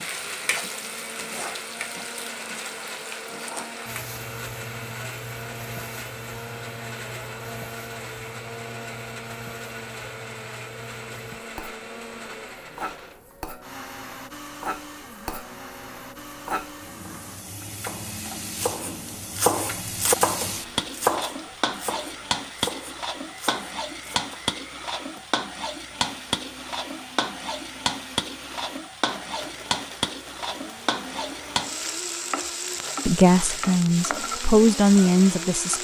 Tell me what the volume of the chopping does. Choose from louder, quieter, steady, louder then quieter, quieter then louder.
louder then quieter.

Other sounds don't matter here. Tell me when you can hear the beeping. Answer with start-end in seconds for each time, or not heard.
not heard.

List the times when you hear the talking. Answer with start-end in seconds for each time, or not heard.
33.0-35.7.